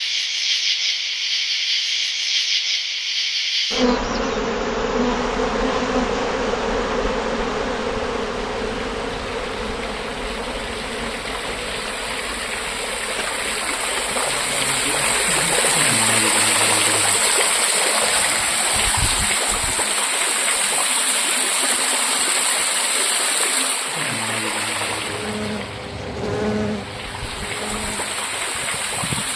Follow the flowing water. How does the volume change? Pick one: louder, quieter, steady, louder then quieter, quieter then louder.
louder then quieter.